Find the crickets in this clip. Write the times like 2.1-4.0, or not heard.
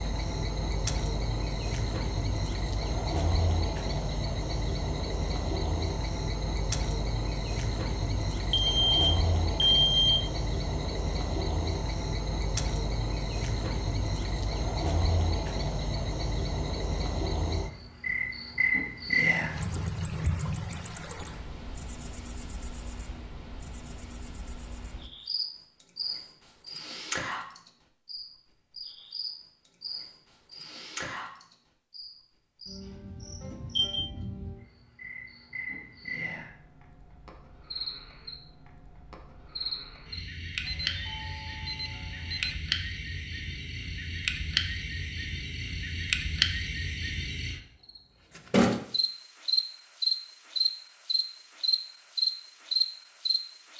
0.0-53.7.